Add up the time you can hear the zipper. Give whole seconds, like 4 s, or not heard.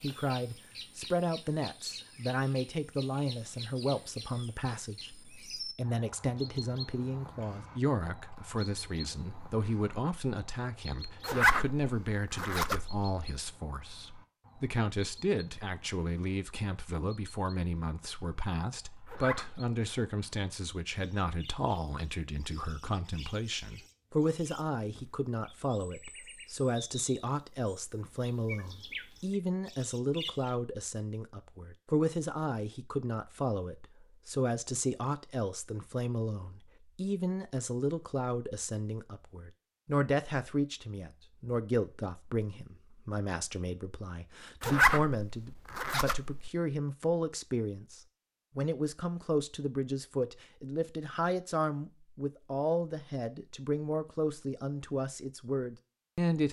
4 s.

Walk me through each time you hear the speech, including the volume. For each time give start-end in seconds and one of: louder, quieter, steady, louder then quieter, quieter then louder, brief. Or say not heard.
0.0-56.4 steady.